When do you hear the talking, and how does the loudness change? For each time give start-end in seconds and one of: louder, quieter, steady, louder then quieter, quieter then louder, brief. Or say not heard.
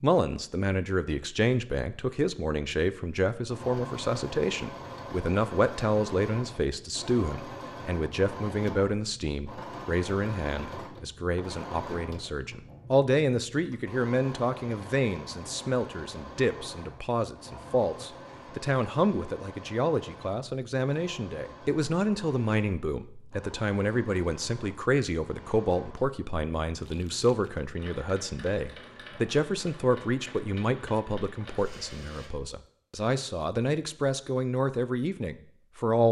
0.0-36.0 steady.